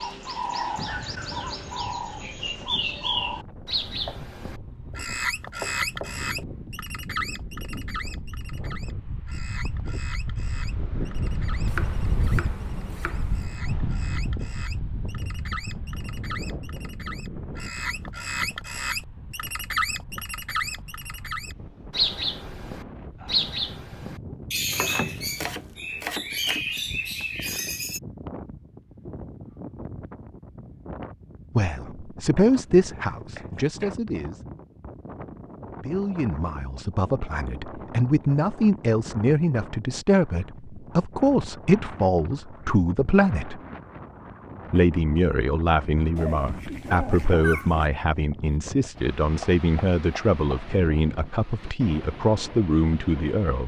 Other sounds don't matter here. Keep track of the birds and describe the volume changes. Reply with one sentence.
The loudness of the birds goes down, then up.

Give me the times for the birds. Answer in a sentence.
You can hear the birds from 0.0 to 28.0 s.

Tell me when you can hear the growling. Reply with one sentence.
You can hear the growling from 46.1 to 47.9 s.